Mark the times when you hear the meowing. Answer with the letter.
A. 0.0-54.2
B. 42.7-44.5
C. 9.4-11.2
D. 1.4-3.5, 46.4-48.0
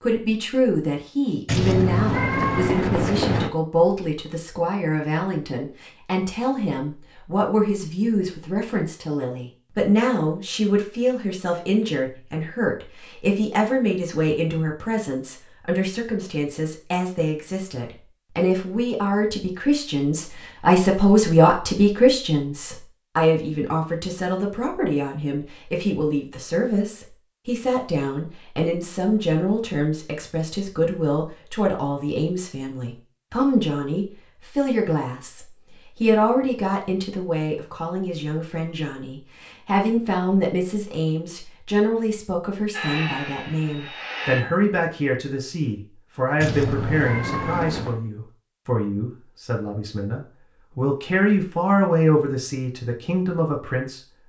D.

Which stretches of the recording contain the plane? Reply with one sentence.
You can hear the plane from 42.7 to 44.5 s.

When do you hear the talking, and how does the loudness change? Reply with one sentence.
You can hear the talking from 0.0 to 54.2 s, at a steady volume.